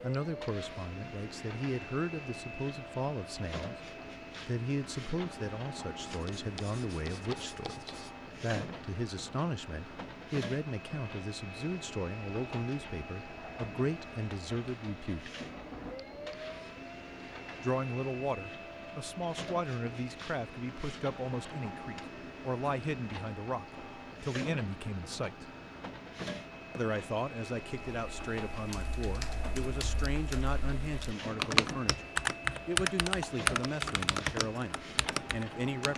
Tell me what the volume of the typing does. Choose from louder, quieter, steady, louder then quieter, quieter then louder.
louder then quieter.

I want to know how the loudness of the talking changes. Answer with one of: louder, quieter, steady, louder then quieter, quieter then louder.
steady.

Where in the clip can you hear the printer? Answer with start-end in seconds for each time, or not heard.
0.0-35.9.